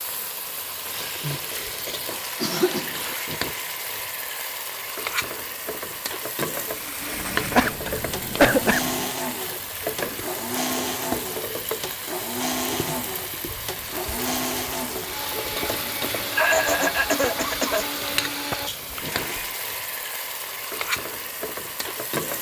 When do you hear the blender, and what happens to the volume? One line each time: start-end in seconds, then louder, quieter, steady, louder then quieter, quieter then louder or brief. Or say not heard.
6.6-19.6 steady.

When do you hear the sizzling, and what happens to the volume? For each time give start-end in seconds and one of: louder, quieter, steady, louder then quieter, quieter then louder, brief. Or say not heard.
0.0-22.3 steady.